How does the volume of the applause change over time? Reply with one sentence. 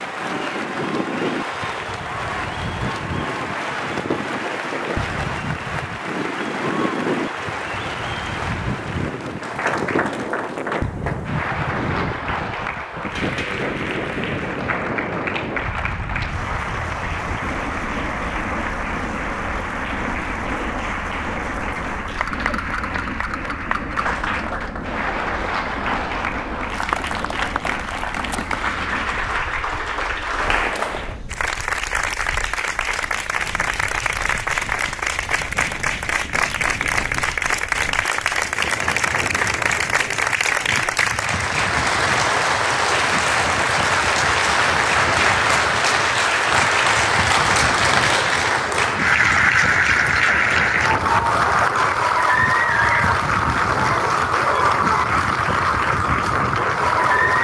The volume of the applause goes up.